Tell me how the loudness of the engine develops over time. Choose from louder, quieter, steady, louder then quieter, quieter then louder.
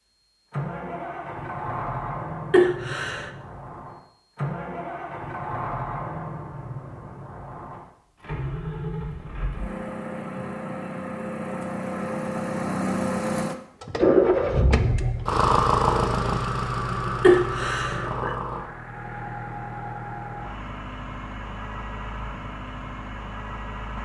louder then quieter.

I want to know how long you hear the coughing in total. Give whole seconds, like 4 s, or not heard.
2 s.